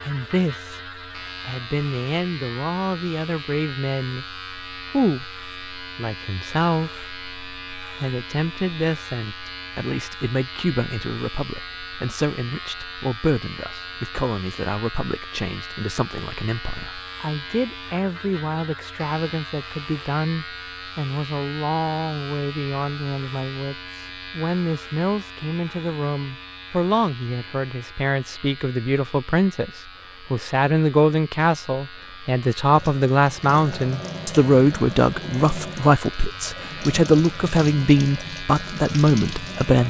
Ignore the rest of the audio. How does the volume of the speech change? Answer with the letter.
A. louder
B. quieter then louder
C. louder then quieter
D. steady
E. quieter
A.